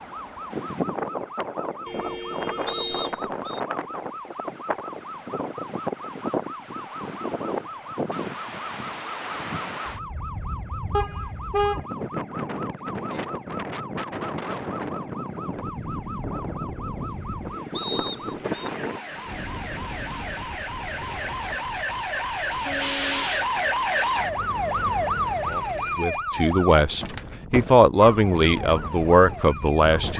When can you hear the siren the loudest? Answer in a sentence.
The volume of the siren peaks at 24 seconds.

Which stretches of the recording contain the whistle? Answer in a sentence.
You can hear the whistle from 2.6 to 3.6 s and from 17.8 to 18.7 s.